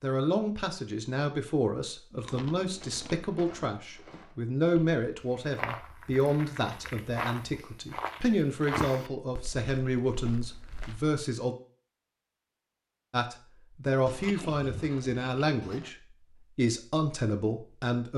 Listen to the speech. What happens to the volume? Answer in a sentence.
The volume of the speech stays about the same.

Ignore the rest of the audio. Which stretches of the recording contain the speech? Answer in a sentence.
You can hear the speech from 0.0 to 11.6 s and from 13.1 to 18.1 s.